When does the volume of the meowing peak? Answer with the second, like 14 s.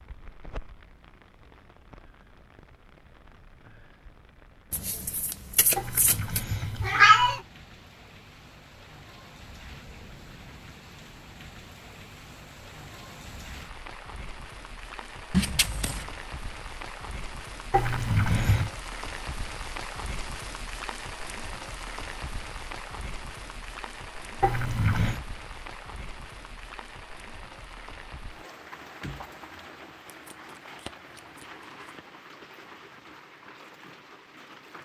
7 s.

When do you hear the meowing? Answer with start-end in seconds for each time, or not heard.
5.8-7.4, 17.7-18.7, 24.4-25.2.